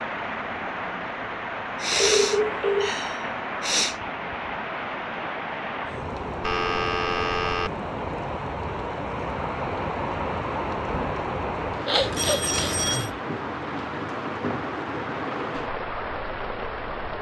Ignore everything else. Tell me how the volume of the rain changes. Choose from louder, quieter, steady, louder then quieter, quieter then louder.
steady.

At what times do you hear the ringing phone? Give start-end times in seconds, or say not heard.
1.9-3.0, 6.4-7.7, 12.0-13.1.